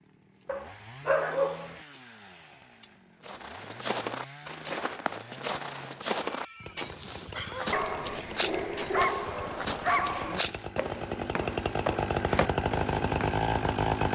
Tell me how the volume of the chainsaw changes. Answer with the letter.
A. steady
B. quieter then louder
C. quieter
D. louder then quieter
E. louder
E.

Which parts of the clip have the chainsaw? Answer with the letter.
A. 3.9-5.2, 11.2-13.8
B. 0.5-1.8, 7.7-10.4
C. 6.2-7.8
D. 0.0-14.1
D.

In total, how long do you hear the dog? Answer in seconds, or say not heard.
4 s.